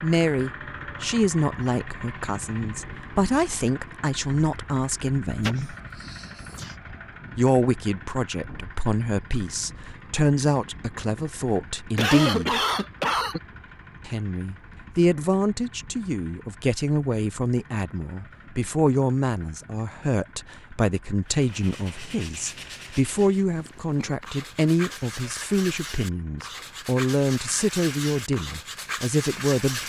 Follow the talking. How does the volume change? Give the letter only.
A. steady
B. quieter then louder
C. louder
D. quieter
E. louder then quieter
A.